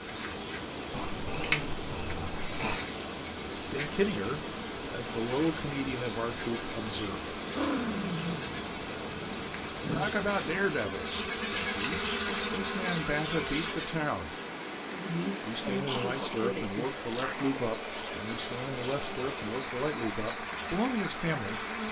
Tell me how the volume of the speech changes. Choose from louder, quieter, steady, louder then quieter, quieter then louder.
steady.